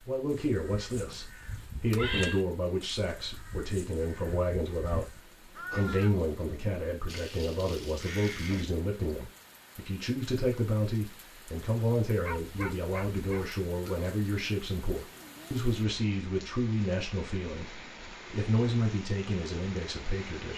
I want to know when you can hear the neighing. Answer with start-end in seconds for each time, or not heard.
0.9-2.5.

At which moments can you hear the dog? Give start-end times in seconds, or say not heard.
12.2-13.6.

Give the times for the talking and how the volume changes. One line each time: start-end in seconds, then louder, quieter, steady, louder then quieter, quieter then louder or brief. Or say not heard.
0.1-20.5 steady.